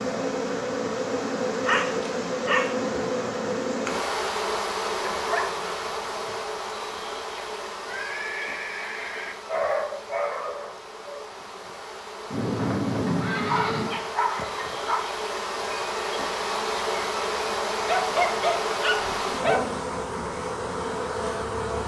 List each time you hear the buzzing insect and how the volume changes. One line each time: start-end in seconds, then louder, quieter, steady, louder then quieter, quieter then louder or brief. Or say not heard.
0.0-21.8 quieter then louder.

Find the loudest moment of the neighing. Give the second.
13 s.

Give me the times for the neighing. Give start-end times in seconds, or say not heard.
7.3-9.3, 12.3-14.1.